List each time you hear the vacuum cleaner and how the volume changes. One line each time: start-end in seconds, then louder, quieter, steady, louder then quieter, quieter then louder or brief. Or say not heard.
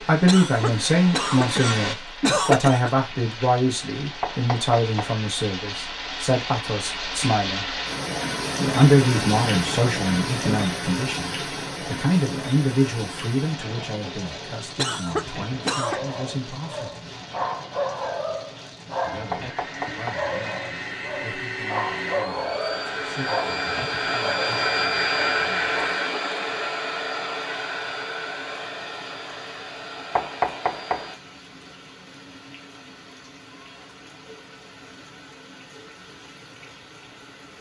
0.0-1.9 brief
19.2-31.2 louder then quieter.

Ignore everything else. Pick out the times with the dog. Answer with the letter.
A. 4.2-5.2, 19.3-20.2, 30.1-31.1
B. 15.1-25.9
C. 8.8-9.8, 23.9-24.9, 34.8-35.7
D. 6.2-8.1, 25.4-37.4
B.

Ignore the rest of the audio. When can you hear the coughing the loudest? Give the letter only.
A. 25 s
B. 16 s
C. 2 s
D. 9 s
C.